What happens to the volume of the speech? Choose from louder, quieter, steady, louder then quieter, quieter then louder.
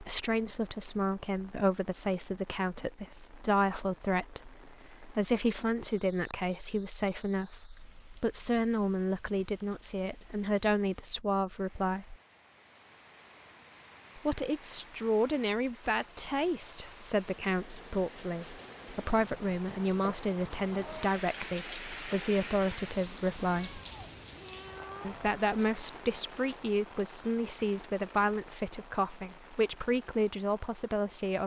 steady.